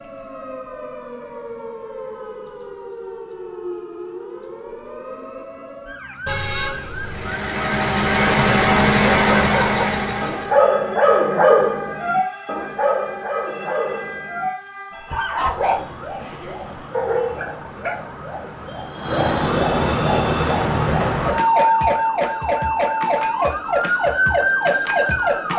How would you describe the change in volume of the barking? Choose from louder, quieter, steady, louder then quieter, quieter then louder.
quieter.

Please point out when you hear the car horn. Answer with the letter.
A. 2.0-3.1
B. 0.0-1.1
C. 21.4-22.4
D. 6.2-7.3
D.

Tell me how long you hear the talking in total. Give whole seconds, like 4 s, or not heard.
not heard.